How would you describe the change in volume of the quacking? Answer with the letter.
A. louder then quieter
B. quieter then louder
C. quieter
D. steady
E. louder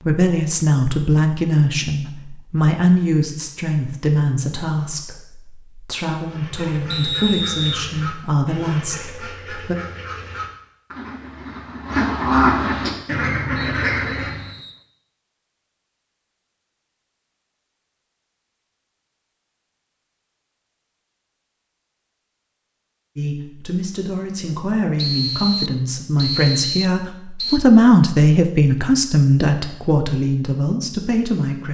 E.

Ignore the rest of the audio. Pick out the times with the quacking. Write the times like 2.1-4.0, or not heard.
6.2-14.5.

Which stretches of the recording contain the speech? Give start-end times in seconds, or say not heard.
0.0-9.8, 23.1-31.6.